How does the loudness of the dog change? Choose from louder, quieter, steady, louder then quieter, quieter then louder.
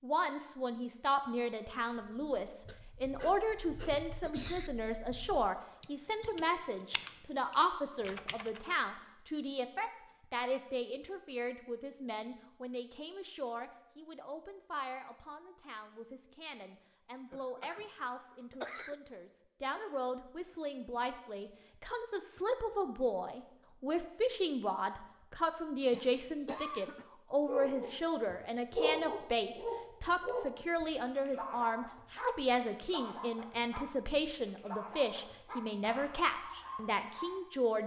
quieter.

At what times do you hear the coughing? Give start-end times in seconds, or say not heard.
2.6-4.7, 17.3-18.9, 25.9-27.1.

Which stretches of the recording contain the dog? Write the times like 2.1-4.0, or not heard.
27.4-37.4.